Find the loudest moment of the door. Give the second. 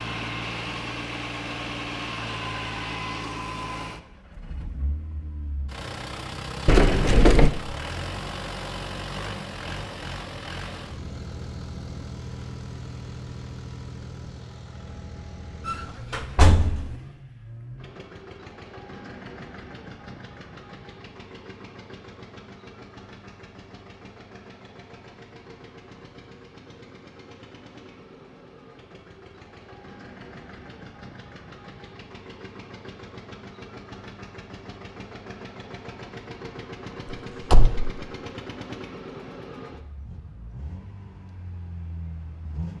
7 s.